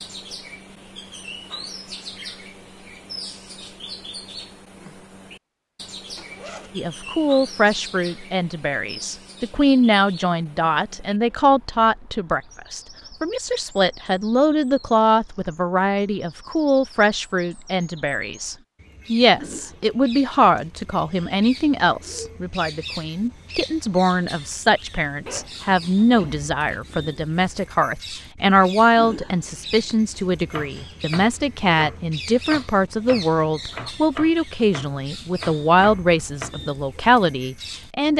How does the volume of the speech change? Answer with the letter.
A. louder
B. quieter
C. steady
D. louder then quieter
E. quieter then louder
C.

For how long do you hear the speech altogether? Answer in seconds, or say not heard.
31 s.